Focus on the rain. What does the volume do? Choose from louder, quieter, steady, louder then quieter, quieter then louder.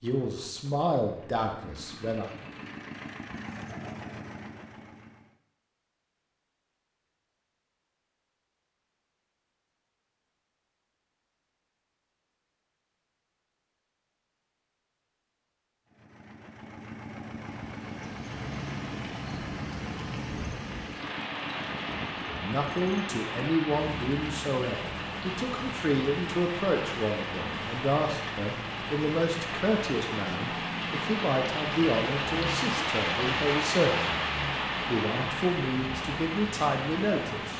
louder.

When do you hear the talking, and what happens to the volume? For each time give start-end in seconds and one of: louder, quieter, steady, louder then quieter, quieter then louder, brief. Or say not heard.
0.0-2.3 brief
22.4-34.2 steady
34.8-37.5 brief.